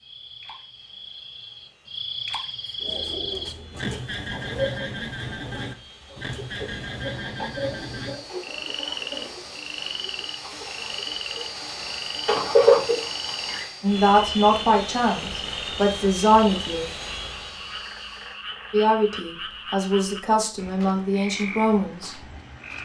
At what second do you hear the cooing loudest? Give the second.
13 s.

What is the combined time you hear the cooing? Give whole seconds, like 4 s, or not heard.
11 s.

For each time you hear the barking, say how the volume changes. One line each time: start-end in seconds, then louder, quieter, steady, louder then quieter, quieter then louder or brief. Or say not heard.
not heard.